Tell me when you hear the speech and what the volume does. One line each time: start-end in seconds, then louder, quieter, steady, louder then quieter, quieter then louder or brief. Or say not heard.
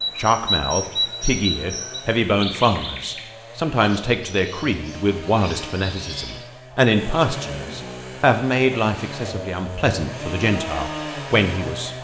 0.1-11.9 steady.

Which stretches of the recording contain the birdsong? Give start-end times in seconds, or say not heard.
0.0-6.5.